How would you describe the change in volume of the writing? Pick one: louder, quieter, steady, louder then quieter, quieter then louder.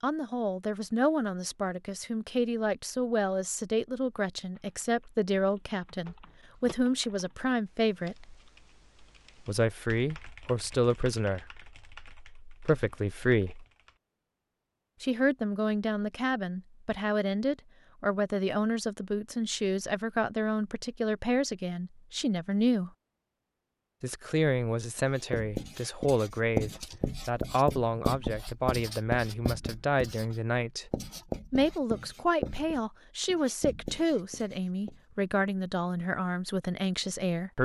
quieter.